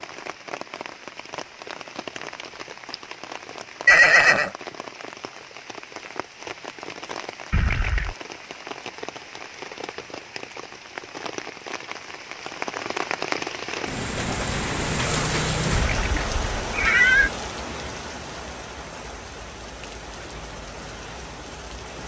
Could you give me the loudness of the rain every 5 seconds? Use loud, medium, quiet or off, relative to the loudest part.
medium, medium, loud, loud, medium.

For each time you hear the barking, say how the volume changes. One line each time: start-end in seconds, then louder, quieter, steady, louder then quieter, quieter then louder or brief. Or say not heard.
not heard.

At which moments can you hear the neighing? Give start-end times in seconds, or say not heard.
3.9-4.5, 7.5-8.2, 15.7-17.3.